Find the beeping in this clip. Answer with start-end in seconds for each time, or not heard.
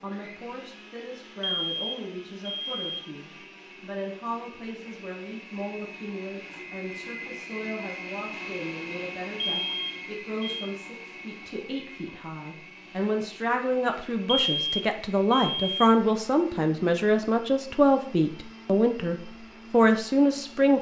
1.4-3.1, 9.4-10.7, 14.3-15.9.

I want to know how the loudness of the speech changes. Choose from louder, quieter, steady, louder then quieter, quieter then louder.
louder.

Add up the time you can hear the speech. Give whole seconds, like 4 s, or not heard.
21 s.